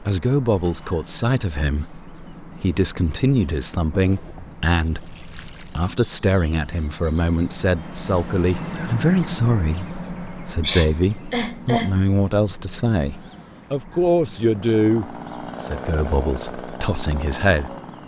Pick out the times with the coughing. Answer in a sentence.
The coughing can be heard from 10.6 to 12.0 s.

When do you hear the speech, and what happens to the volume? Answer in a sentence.
The speech can be heard from 0.0 to 18.0 s, at a steady volume.